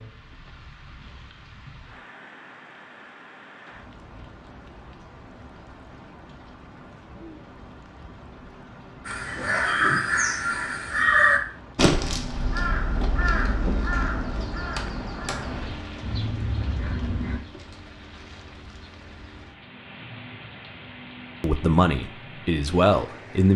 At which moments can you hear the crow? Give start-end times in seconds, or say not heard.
9.1-17.4.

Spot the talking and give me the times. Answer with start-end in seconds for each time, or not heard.
21.4-23.5.